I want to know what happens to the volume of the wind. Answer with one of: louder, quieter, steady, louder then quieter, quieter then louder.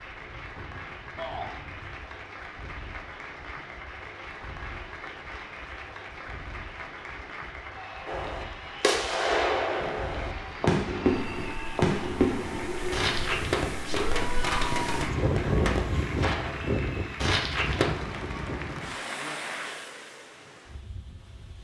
louder then quieter.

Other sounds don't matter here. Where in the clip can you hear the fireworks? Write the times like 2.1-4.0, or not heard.
8.1-17.9.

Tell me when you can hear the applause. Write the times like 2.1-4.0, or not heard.
0.0-19.9.